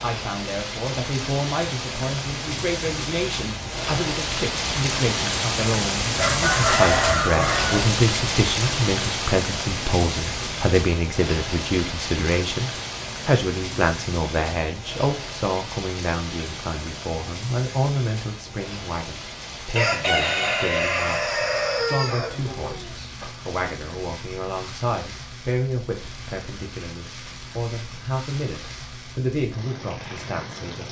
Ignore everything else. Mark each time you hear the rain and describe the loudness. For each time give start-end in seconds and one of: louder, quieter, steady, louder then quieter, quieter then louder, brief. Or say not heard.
0.0-30.8 quieter.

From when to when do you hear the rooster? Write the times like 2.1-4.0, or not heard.
6.2-7.8, 19.8-23.3.